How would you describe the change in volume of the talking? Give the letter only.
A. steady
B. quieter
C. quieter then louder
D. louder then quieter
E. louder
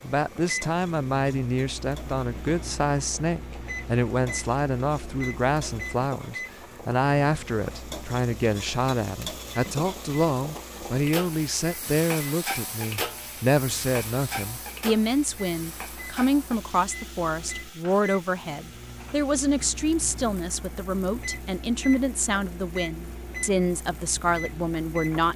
A.